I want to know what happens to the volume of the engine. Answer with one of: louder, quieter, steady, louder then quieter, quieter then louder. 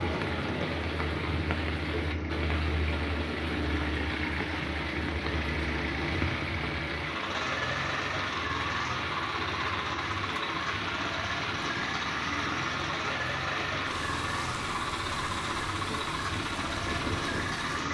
steady.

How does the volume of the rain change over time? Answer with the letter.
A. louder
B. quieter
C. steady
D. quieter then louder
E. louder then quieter
C.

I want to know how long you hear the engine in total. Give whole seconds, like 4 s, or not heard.
18 s.